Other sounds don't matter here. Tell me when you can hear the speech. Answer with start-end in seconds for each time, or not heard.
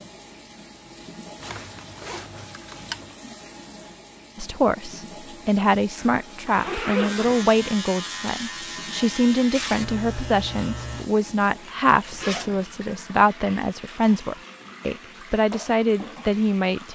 4.3-16.9.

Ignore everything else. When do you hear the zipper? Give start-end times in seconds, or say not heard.
1.4-3.1, 6.0-7.5, 11.9-12.7.